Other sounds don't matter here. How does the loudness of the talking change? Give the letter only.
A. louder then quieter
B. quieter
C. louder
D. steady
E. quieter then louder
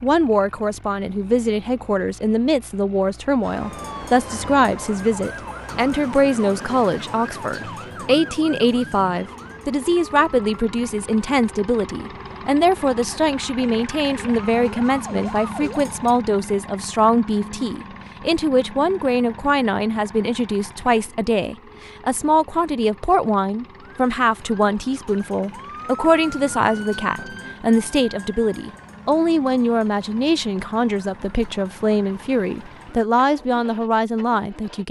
D.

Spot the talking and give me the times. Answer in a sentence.
You can hear the talking from 0.0 to 34.8 s.